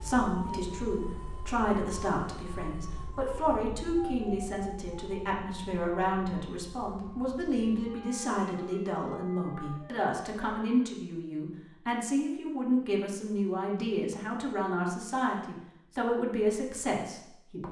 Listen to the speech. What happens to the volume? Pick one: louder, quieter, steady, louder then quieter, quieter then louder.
steady.